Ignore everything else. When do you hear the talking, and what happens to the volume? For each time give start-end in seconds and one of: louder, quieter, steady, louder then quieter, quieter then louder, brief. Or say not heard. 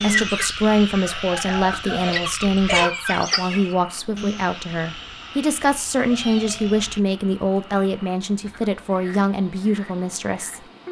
0.0-10.6 steady.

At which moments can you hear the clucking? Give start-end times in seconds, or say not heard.
0.0-3.6.